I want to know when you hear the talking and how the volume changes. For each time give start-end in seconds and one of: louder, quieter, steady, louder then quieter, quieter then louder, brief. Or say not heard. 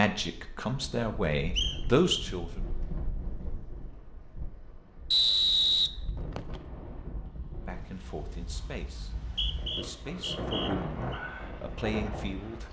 0.0-2.6 brief
7.7-12.6 quieter then louder.